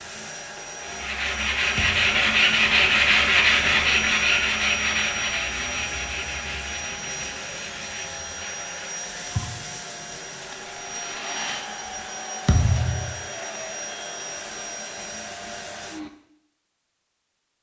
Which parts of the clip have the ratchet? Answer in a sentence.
You can't hear the ratchet here.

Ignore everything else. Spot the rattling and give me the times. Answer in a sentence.
You can hear the rattling from 10.5 to 11.7 s.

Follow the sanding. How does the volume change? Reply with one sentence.
The loudness of the sanding goes down.